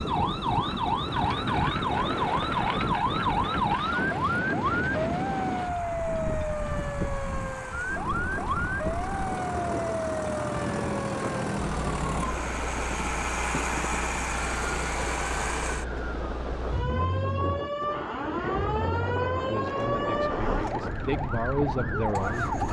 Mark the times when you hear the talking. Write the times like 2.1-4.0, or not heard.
19.4-22.6.